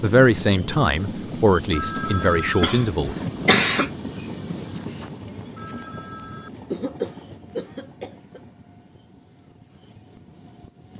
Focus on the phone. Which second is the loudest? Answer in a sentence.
The loudest moment of the phone is at 2 seconds.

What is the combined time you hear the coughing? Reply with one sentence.
The coughing can be heard for 3 seconds in total.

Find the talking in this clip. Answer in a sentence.
You can hear the talking from 0.0 to 3.2 s.